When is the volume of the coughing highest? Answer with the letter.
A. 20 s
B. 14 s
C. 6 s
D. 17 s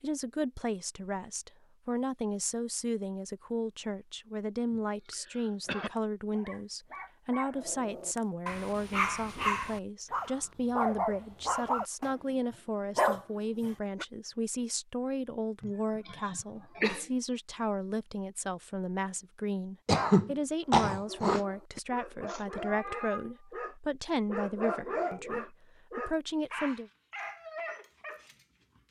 A.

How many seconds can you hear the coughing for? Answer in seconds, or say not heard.
5 s.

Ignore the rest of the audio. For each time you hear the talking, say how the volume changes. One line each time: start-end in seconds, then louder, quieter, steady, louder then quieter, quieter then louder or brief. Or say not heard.
0.0-26.9 steady.